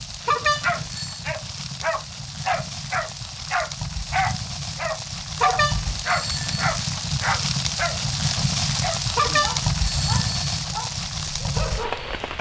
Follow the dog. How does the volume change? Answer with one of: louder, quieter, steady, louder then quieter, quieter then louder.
quieter.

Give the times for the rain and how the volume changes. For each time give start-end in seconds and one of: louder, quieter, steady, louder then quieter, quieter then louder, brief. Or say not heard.
0.0-12.3 louder.